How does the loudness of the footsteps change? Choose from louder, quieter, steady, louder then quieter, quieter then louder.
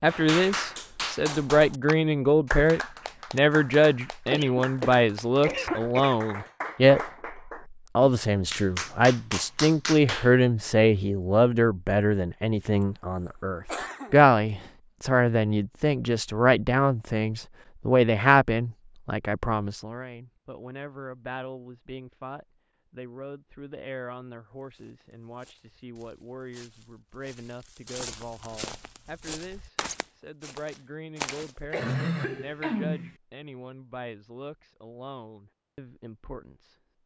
louder.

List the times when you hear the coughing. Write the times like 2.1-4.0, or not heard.
4.3-6.2, 13.7-14.2, 31.7-33.1.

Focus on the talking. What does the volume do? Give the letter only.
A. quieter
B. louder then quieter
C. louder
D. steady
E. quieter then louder
A.